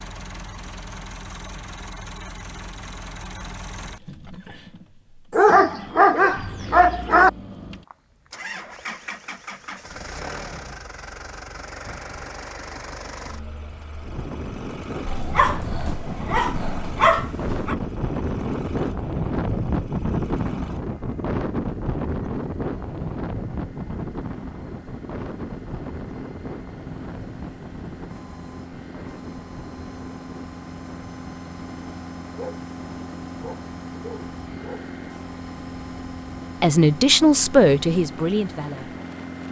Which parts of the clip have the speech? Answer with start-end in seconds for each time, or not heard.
36.6-39.0.